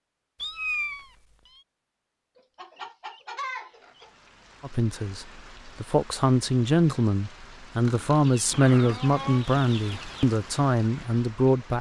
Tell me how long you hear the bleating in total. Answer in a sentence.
You can't hear the bleating here.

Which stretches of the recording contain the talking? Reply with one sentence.
You can hear the talking from 4.6 to 11.7 s.